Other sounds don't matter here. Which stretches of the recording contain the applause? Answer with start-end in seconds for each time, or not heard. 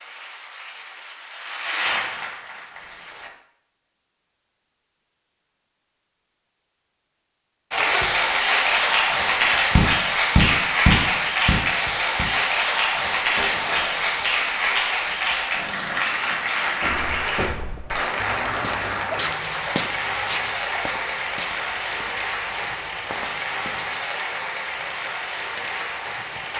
0.0-3.3, 7.7-26.5.